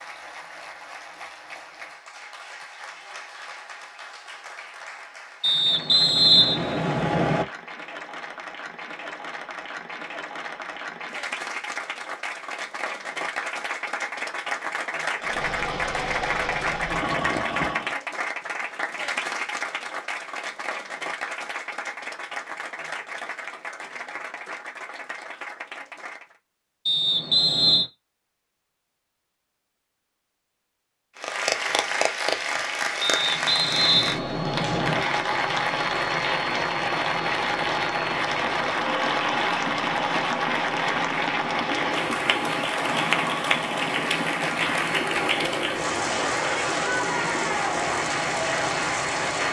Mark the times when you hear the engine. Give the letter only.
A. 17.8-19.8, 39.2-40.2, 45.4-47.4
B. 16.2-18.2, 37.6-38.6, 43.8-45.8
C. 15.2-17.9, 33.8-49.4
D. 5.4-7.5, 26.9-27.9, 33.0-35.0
C.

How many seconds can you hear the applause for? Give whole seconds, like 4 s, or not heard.
45 s.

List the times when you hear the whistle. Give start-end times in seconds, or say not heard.
5.4-7.5, 26.9-27.9, 33.0-35.0.